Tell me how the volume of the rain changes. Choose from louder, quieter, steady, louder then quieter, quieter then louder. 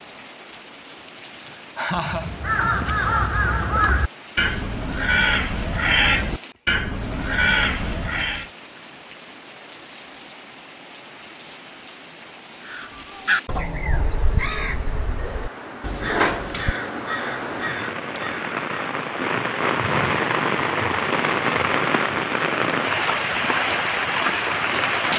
louder.